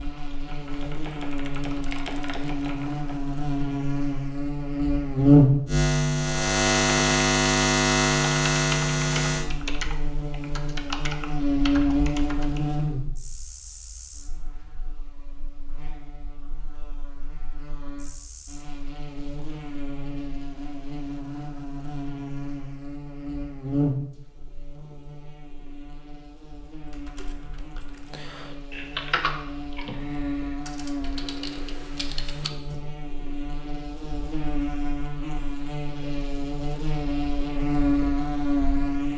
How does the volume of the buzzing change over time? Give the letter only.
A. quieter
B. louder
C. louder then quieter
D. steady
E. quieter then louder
E.